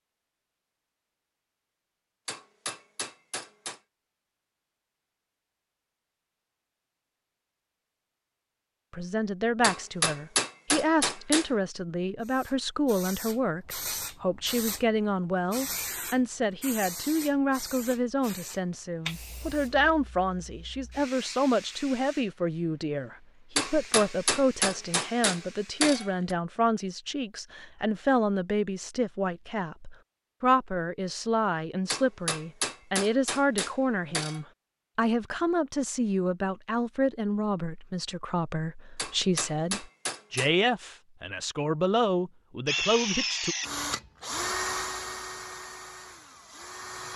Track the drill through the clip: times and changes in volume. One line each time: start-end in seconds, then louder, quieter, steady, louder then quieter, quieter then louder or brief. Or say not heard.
42.6-47.1 quieter.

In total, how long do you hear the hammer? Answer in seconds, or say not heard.
10 s.